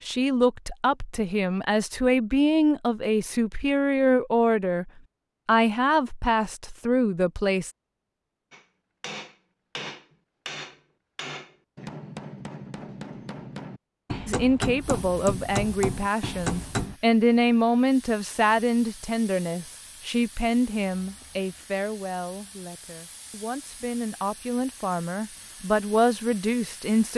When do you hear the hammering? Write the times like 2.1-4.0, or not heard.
8.5-16.9.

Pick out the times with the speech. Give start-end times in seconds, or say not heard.
0.1-7.7, 14.2-27.1.